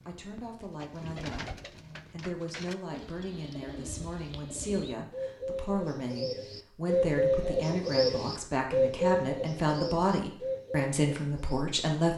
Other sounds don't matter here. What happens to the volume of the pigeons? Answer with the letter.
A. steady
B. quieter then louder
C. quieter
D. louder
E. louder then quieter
E.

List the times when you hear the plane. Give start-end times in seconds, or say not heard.
not heard.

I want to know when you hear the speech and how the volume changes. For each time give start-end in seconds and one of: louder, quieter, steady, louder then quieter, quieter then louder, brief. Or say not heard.
0.1-12.1 louder.